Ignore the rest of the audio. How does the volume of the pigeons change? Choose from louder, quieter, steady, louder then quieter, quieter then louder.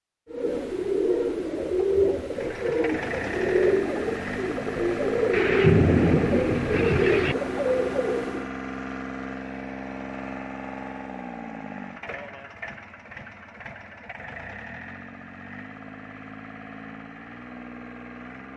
steady.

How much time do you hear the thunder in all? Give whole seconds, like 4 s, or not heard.
2 s.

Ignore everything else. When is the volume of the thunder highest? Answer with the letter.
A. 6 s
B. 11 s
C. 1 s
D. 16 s
A.